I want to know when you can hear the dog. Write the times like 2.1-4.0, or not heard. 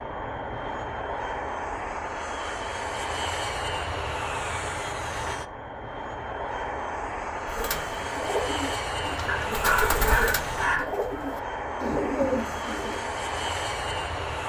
9.2-10.9.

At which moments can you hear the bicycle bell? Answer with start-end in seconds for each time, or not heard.
not heard.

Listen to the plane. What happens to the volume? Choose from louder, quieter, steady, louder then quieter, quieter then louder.
steady.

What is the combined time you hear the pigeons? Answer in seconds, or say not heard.
6 s.